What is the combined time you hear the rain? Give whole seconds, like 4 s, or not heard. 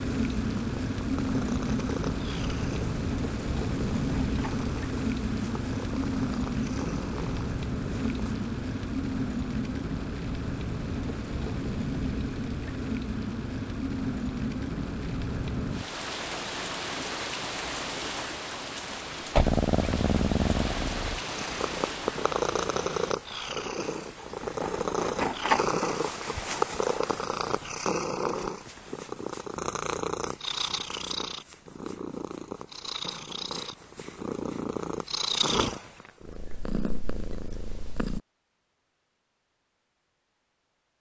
23 s.